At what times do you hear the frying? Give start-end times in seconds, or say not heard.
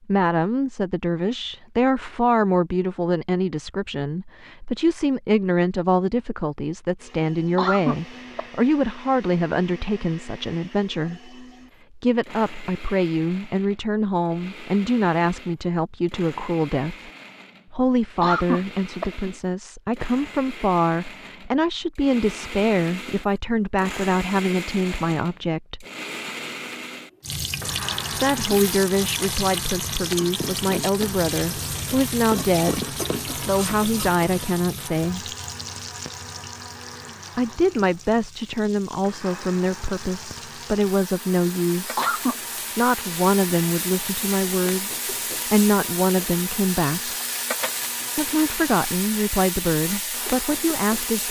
27.2-51.2.